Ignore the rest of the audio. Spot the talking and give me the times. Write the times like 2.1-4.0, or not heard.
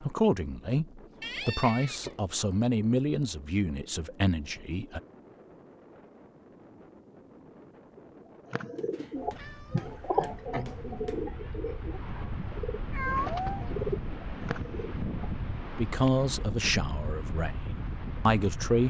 0.0-5.0, 15.7-18.8.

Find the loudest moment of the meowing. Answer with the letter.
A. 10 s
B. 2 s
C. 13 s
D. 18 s
C.